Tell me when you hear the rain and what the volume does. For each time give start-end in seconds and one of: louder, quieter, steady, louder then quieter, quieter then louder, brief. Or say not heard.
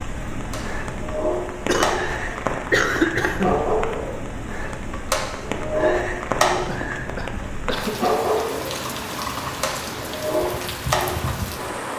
0.0-11.9 steady.